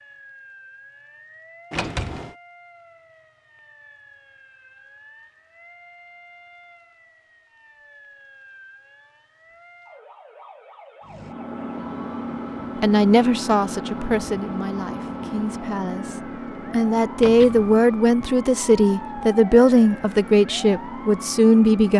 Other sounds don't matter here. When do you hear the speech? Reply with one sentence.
The speech can be heard from 12.8 to 21.9 s.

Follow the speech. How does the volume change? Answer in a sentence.
The loudness of the speech goes down, then up.